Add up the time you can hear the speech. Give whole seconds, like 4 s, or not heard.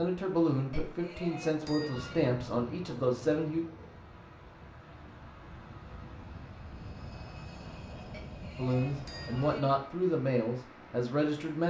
7 s.